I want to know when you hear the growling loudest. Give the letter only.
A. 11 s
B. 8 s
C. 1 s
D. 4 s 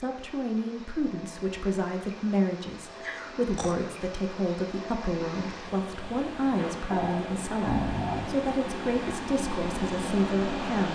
B.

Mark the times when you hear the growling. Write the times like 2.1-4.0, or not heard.
3.0-3.9, 6.9-8.3.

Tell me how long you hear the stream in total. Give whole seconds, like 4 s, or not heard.
11 s.